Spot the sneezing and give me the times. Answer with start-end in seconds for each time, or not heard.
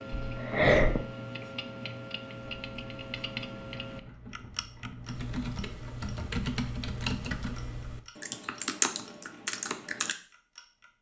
0.1-1.0.